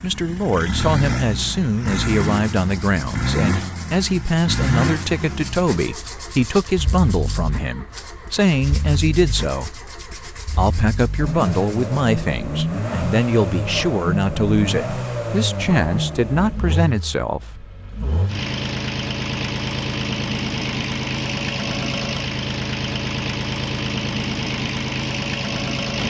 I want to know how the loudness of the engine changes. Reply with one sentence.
The loudness of the engine goes down, then up.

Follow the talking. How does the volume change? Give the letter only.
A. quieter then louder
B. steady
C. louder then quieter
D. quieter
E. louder
B.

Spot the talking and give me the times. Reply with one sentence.
You can hear the talking from 0.0 to 17.6 s.